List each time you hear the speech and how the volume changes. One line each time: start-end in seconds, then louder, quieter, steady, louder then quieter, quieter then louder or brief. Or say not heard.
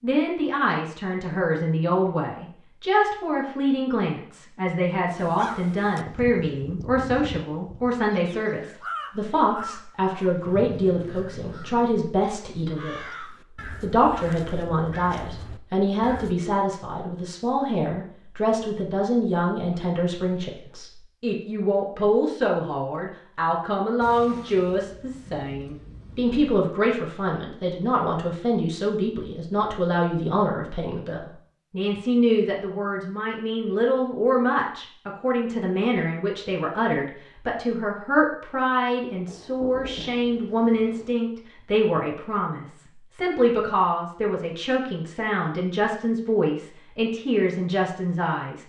0.0-48.6 steady.